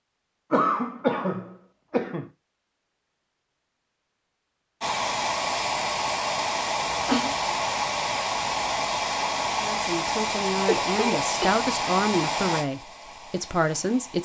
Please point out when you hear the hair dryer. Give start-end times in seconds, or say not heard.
4.8-14.2.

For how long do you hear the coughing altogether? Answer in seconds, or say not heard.
3 s.